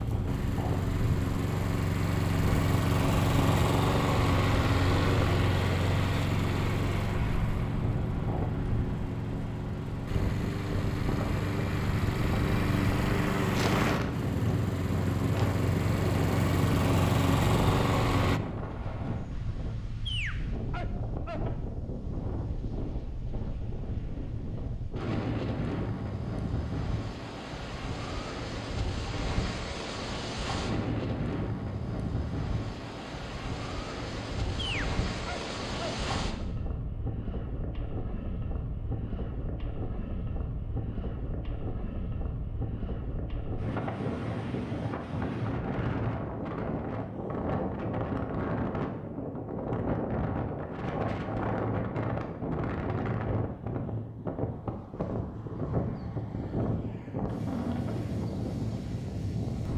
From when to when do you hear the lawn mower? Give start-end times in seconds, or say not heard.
0.0-18.4.